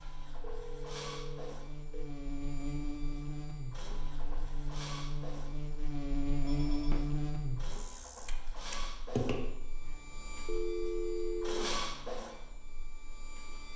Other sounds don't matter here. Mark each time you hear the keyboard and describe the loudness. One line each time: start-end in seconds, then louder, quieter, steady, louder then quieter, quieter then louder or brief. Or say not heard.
not heard.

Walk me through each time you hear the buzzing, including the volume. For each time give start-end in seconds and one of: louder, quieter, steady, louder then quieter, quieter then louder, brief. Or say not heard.
0.0-13.7 louder then quieter.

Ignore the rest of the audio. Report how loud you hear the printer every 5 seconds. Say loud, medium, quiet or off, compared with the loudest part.
medium, medium, loud.